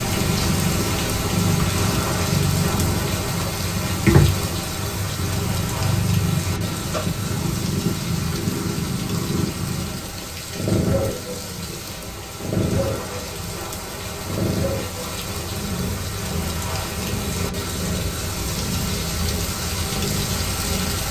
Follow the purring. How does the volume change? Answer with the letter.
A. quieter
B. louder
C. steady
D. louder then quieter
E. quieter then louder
A.